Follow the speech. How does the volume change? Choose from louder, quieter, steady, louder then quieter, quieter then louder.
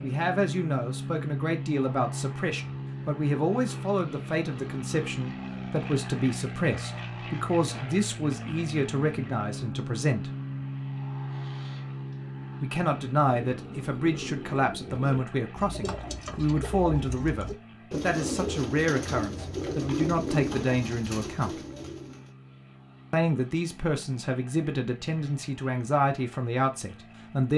steady.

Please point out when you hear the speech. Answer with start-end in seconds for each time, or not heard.
0.0-10.3, 12.6-21.6, 23.1-27.5.